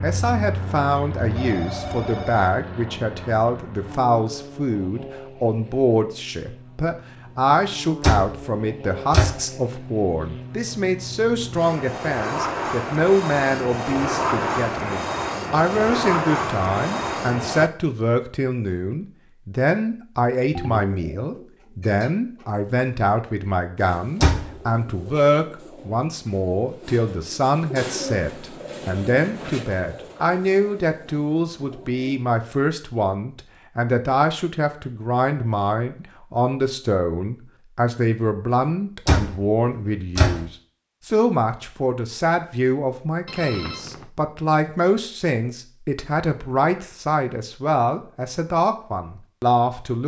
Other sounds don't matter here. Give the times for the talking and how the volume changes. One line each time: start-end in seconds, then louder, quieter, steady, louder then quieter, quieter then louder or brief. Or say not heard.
0.0-50.0 steady.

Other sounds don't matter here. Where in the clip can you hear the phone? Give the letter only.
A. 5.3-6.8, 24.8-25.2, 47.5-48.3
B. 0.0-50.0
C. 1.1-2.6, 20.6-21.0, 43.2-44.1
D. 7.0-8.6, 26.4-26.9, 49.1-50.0
C.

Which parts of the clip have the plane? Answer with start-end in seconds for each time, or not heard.
0.0-17.7.